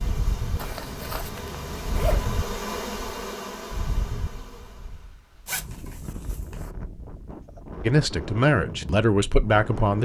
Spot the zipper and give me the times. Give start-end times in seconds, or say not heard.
0.6-2.3, 5.5-6.7.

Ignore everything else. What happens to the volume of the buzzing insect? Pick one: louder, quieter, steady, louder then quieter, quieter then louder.
louder then quieter.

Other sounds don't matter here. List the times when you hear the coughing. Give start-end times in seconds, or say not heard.
not heard.